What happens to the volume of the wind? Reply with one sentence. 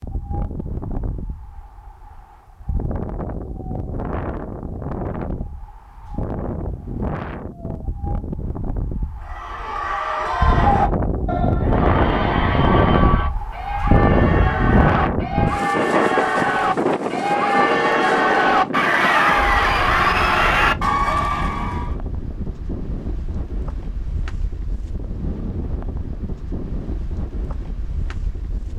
The volume of the wind goes up, then down.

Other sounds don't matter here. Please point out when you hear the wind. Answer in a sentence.
The wind can be heard from 0.0 to 28.7 s.